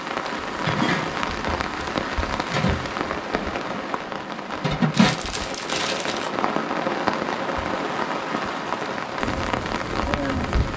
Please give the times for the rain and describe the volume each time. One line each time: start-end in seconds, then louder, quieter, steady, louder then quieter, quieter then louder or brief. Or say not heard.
0.0-10.7 steady.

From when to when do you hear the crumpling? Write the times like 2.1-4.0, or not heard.
4.9-6.3.